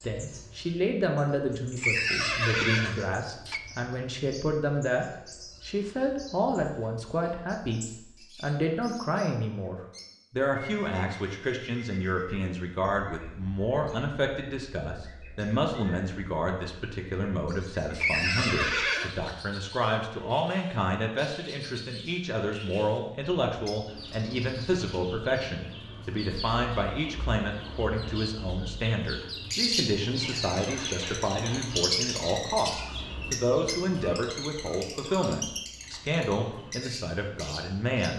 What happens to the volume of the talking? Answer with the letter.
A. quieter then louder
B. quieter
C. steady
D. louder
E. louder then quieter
C.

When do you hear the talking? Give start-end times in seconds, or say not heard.
0.0-5.0, 5.7-38.1.